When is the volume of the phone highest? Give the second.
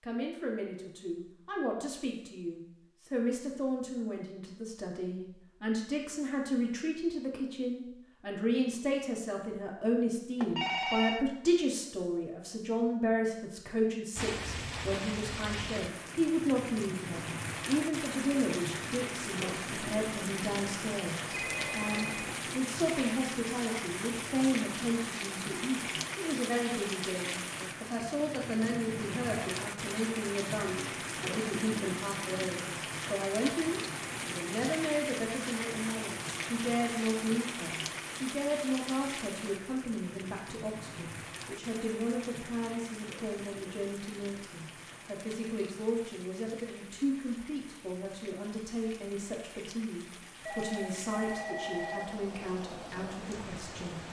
11 s.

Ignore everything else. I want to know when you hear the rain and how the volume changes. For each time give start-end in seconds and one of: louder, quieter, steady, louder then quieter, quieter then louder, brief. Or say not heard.
14.2-54.0 quieter.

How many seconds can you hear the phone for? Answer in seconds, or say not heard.
4 s.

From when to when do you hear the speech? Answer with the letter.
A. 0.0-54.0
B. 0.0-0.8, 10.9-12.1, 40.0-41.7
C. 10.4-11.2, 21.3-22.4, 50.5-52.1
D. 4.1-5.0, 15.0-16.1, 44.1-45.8
A.